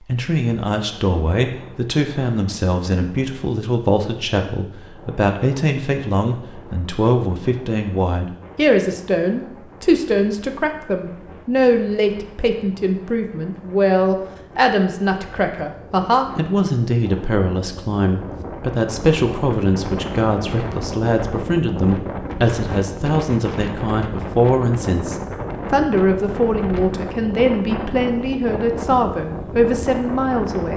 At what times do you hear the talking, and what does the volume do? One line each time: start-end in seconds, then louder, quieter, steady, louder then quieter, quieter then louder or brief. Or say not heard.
0.1-30.7 steady.